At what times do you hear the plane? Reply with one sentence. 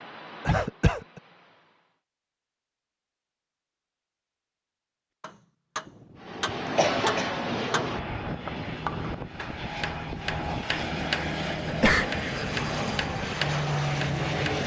You can hear the plane from 0.0 to 1.9 s and from 6.2 to 14.6 s.